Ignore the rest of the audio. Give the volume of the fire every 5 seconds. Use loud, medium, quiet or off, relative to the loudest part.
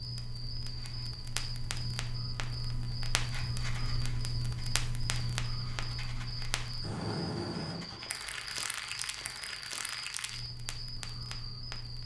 loud, loud, medium.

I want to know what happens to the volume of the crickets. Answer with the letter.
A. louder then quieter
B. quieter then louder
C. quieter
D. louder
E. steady
E.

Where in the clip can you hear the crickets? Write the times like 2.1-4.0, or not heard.
0.0-12.0.